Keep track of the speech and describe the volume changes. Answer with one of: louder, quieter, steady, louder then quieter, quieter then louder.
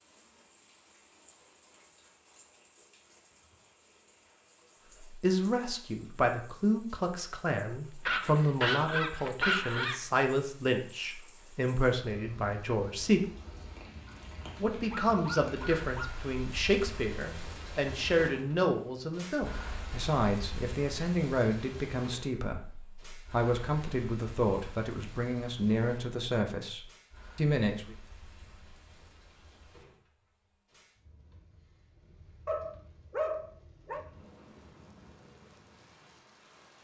steady.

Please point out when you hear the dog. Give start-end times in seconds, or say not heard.
8.1-10.0, 14.1-16.1, 32.5-34.0.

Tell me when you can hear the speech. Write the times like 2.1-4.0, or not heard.
5.1-13.2, 14.6-27.9.